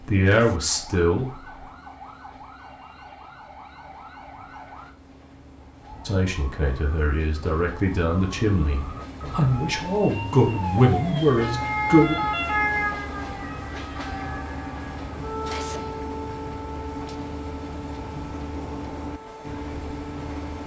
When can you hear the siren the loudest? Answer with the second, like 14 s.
12 s.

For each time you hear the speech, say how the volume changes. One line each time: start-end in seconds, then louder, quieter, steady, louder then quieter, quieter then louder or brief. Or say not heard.
0.1-1.4 brief
6.0-12.2 louder.